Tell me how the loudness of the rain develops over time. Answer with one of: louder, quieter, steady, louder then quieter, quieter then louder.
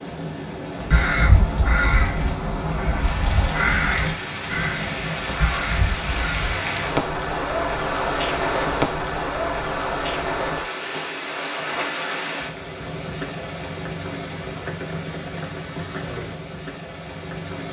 louder then quieter.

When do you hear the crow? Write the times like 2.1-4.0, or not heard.
0.8-6.7.